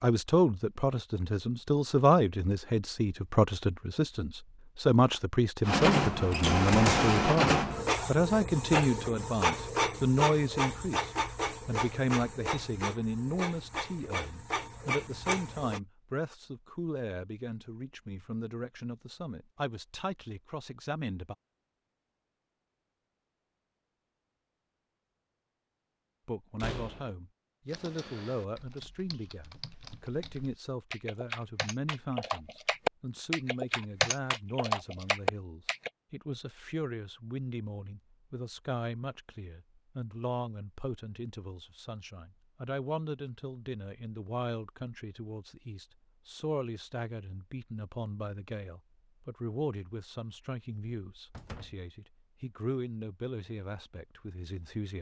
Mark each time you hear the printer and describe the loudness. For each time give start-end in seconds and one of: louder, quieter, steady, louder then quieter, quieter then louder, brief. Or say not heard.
5.7-15.8 quieter.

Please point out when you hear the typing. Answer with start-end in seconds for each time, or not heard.
27.6-35.9.